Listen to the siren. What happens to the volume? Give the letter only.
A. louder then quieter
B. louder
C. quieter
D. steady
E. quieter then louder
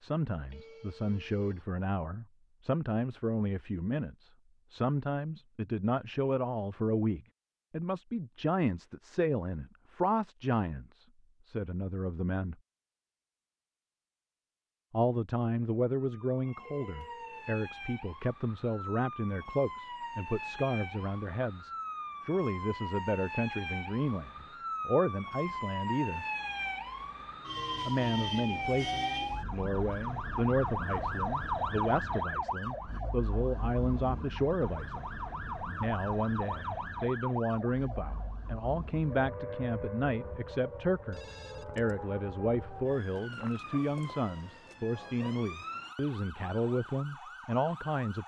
A.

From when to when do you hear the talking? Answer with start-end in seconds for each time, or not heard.
0.0-12.6, 14.9-26.2, 27.9-35.2, 35.8-48.2.